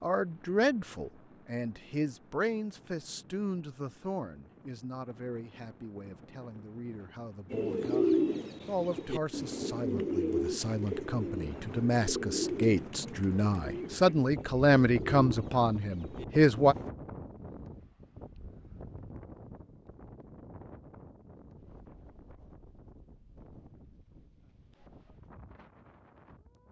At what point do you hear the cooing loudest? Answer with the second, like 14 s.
8 s.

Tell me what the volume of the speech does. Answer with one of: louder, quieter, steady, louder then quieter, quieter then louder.
quieter then louder.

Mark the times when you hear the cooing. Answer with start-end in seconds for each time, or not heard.
7.5-16.9.